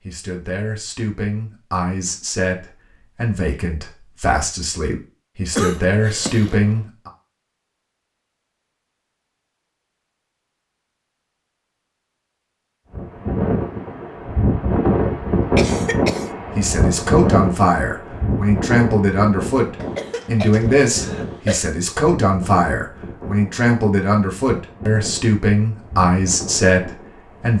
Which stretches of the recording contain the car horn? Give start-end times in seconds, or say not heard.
not heard.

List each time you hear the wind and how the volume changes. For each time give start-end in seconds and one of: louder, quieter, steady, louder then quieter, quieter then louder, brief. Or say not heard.
12.9-27.5 quieter.